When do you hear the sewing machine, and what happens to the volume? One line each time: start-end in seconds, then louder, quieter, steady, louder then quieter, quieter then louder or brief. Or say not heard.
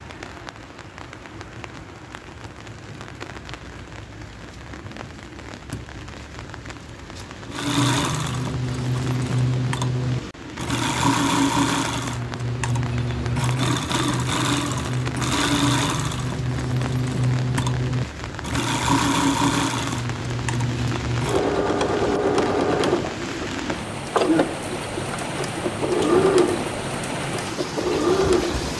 7.5-28.7 steady.